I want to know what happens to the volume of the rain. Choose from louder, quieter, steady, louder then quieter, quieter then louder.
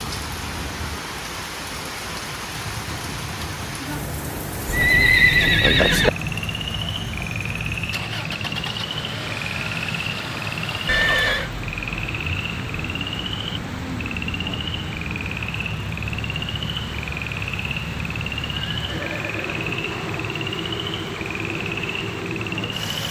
steady.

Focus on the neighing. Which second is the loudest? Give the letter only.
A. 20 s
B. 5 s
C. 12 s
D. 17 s
B.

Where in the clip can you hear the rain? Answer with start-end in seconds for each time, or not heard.
0.0-23.0.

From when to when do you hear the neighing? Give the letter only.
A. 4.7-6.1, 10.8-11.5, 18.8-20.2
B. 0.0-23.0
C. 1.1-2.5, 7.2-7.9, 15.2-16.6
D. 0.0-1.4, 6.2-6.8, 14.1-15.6
A.